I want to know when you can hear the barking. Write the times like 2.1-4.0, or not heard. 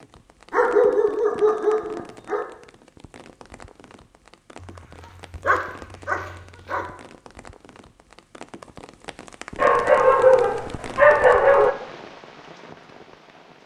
0.5-2.5, 4.6-6.8, 9.6-11.8.